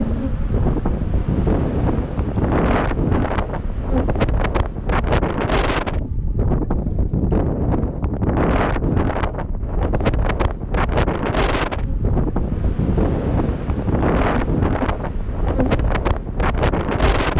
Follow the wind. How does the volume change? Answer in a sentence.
The loudness of the wind stays about the same.